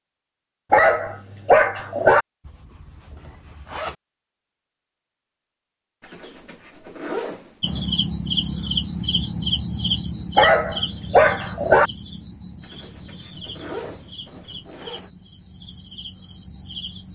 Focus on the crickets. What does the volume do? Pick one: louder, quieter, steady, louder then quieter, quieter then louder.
quieter.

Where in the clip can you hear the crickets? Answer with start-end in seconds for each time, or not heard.
7.6-17.1.